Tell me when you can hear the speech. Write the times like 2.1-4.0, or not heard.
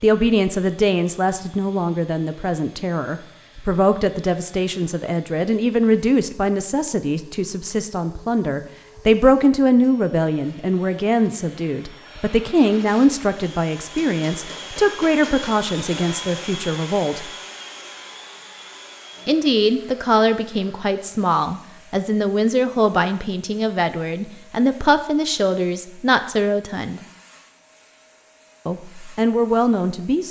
0.0-17.2, 19.2-27.0, 28.6-30.2.